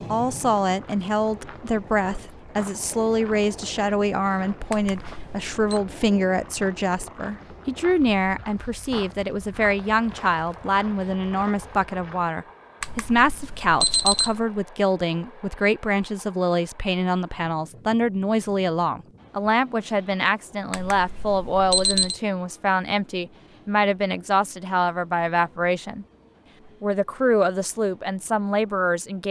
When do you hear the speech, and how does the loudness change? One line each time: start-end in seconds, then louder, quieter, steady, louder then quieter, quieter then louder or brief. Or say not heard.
0.1-26.1 steady
26.8-29.2 brief.